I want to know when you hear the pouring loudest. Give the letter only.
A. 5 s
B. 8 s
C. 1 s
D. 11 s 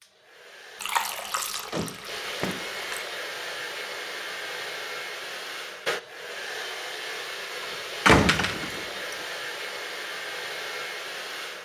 C.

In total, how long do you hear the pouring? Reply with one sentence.
You can hear the pouring for 2 seconds altogether.